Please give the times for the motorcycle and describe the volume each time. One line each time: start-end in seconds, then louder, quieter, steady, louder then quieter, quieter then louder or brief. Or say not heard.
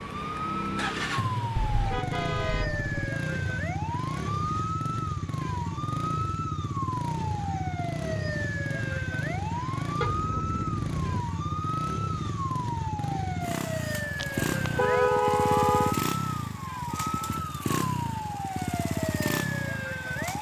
0.0-20.3 steady.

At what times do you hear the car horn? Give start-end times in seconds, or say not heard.
1.6-3.1, 10.0-11.2, 14.2-15.9.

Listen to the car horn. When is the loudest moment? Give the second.
15 s.